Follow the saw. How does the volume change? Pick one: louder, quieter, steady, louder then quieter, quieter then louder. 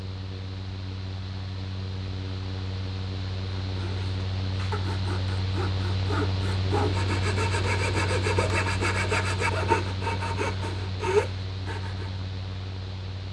louder.